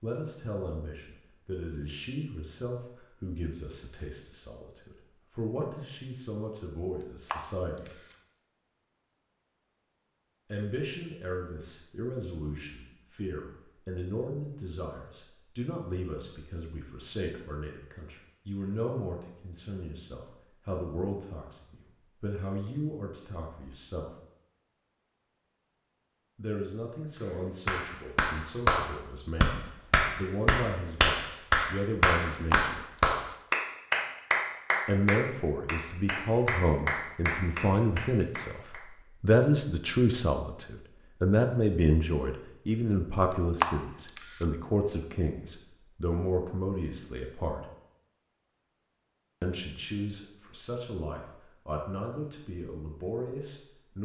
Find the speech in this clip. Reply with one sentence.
The speech can be heard from 0.0 to 8.0 s, from 10.5 to 24.1 s, from 26.4 to 32.9 s, from 34.9 to 47.6 s and from 49.4 to 53.9 s.